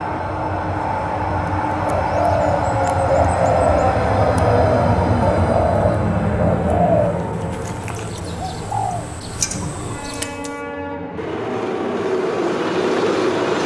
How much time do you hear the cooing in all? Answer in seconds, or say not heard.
9 s.